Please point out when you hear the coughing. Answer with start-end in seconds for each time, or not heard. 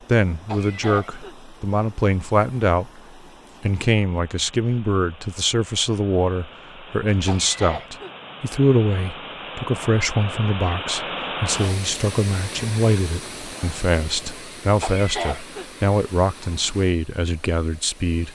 0.5-1.4, 7.2-8.1, 14.8-15.7.